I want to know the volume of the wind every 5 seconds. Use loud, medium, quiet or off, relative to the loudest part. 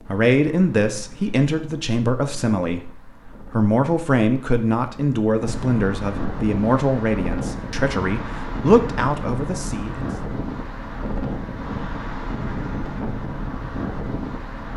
quiet, loud, loud.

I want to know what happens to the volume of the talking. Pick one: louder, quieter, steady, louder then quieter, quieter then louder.
steady.